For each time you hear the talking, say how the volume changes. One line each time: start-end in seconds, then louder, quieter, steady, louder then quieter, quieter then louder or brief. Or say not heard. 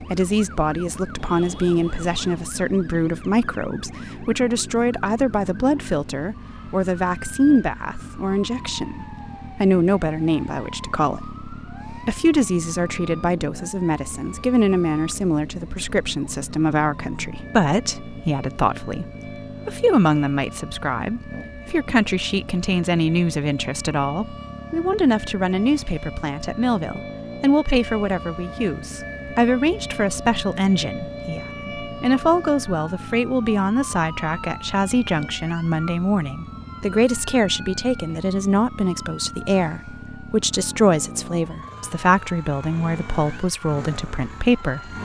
0.0-44.9 steady.